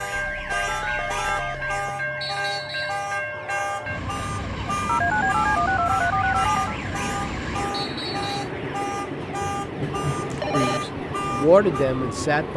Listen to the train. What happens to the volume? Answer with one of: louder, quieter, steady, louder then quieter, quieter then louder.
steady.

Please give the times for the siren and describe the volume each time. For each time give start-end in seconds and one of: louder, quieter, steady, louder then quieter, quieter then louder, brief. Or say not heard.
0.0-12.3 steady.